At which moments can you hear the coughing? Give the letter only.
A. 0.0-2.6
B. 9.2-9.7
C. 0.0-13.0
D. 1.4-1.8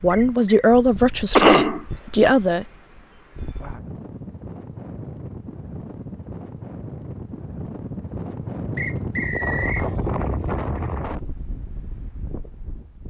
D.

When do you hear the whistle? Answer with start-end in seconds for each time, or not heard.
0.1-0.5, 8.8-9.9.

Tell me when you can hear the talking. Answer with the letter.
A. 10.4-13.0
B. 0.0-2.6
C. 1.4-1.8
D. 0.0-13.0
B.